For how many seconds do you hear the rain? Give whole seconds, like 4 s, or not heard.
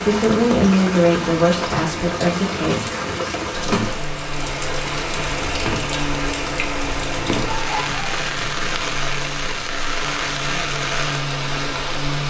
12 s.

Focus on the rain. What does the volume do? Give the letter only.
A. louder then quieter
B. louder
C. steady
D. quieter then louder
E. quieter
C.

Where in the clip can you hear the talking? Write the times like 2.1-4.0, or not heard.
0.0-2.9.